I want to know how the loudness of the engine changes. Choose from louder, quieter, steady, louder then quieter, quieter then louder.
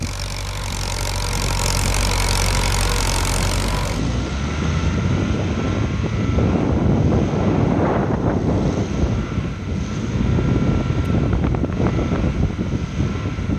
quieter.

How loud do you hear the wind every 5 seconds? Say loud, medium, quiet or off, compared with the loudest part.
medium, loud, loud.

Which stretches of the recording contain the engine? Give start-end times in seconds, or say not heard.
0.0-13.5.